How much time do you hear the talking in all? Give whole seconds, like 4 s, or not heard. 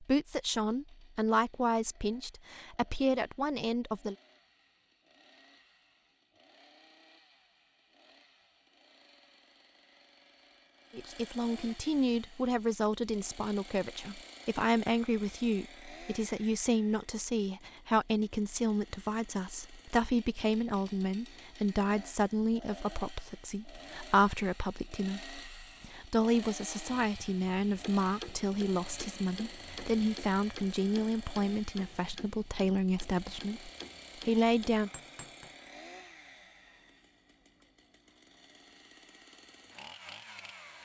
28 s.